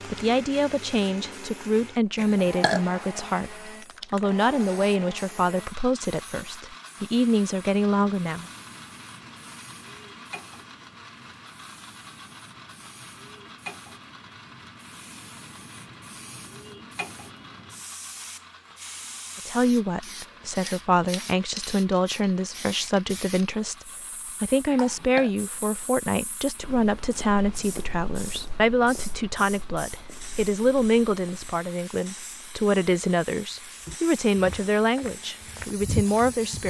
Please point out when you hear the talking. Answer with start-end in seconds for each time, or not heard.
0.1-8.4, 19.4-36.6.